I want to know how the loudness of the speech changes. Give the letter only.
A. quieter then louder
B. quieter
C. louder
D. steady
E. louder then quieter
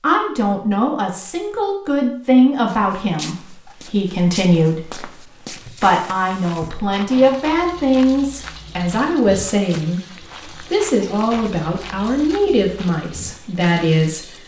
D.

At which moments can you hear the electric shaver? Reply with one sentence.
The electric shaver can't be heard in this clip.